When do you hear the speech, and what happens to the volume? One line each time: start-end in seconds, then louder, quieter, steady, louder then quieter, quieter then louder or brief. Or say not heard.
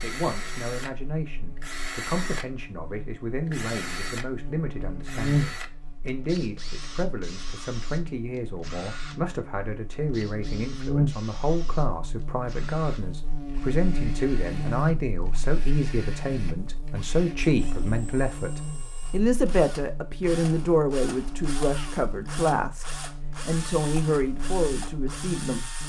0.0-25.7 louder.